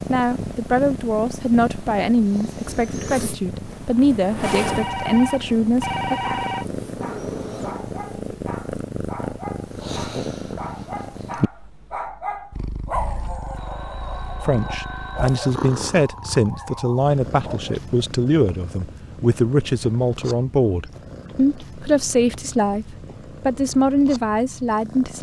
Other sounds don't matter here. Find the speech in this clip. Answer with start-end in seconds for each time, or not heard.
0.1-6.2, 14.4-25.1.